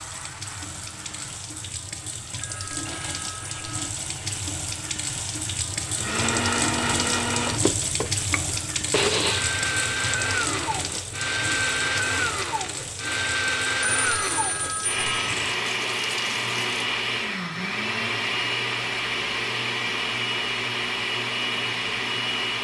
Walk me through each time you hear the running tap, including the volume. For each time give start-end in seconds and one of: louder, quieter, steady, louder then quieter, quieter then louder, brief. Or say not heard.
0.0-16.8 louder then quieter.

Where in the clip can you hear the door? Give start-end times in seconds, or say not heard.
not heard.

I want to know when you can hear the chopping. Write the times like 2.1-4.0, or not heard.
not heard.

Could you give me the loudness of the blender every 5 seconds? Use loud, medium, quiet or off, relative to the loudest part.
quiet, loud, loud, loud, loud.